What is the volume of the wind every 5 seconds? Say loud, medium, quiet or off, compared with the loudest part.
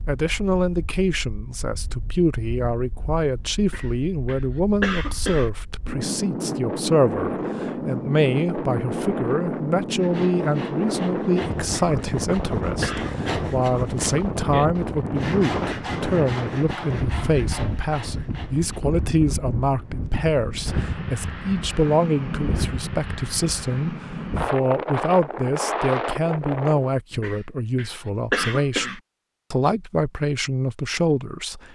quiet, loud, loud, loud, loud, loud, off.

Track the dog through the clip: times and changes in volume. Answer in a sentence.
You can't hear the dog here.